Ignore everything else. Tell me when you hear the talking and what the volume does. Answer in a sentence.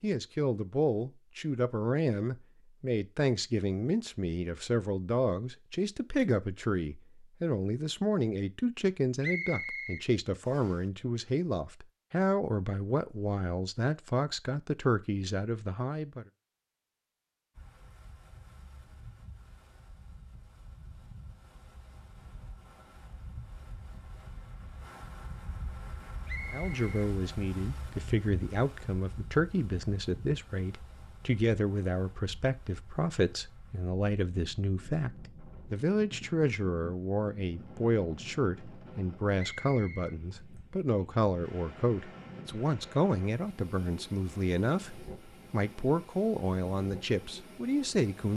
You can hear the talking from 0.0 to 16.2 s, at a steady volume; and from 26.5 to 48.3 s, at a steady volume.